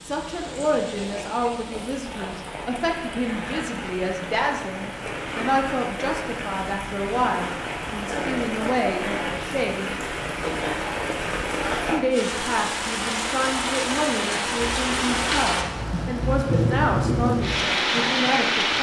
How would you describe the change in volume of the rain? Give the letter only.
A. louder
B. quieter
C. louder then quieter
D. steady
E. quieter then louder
A.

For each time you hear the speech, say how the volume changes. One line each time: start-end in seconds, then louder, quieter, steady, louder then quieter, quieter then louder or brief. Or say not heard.
0.1-9.9 steady
11.9-18.7 steady.